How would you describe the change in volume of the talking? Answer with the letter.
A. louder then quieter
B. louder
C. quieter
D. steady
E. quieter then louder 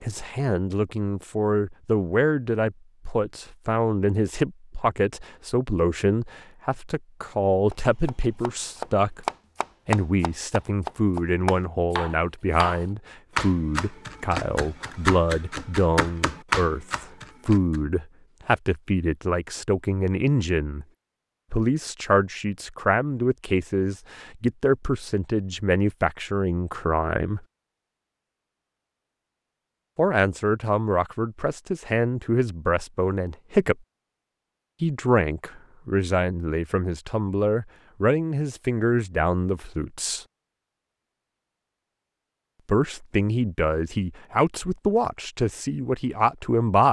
D.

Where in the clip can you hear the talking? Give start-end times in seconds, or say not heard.
0.0-9.2, 9.8-20.9, 21.5-27.4, 29.9-33.8, 34.8-40.2, 42.6-46.8.